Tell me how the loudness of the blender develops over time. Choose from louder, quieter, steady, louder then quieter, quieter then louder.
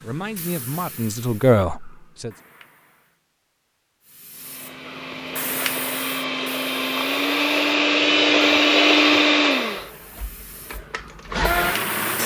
louder then quieter.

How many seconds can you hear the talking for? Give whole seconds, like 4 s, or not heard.
2 s.